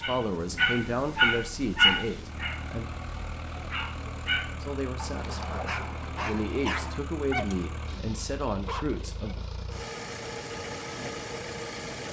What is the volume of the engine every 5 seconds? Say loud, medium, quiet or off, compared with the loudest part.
medium, medium, loud.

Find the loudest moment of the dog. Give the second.
2 s.